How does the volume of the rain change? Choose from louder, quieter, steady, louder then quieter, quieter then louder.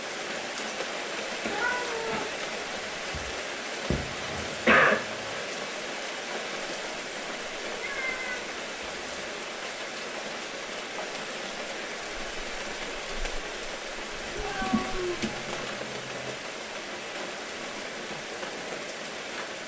steady.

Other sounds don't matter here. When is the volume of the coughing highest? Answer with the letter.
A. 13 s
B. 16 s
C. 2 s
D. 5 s
D.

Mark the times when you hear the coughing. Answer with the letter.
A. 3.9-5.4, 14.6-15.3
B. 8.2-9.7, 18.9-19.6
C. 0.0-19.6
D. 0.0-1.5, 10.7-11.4
A.